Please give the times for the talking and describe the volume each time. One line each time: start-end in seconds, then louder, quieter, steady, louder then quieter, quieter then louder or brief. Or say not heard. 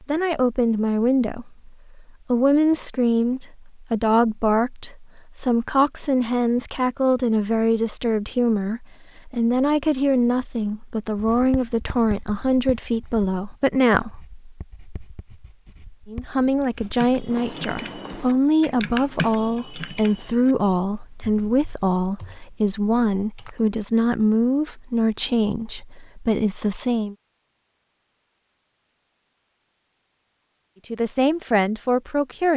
0.0-14.3 steady
16.1-27.1 steady
30.9-32.5 brief.